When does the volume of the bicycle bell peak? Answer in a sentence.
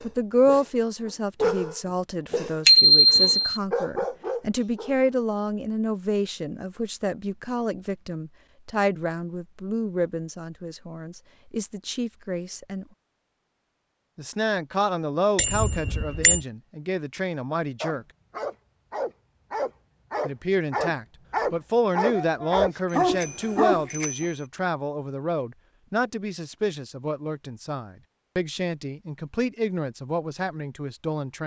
The loudest moment of the bicycle bell is at 3 seconds.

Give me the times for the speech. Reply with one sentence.
You can hear the speech from 0.0 to 12.8 s, from 14.2 to 18.1 s and from 20.2 to 31.4 s.